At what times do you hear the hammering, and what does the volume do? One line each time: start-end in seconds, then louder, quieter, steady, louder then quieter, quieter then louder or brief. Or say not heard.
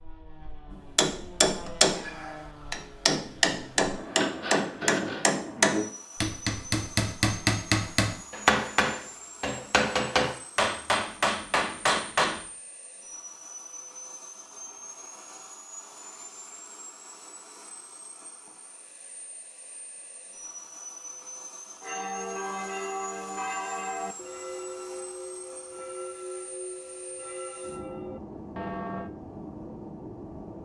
0.9-12.4 steady.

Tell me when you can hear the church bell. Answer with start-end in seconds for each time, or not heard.
21.8-29.1.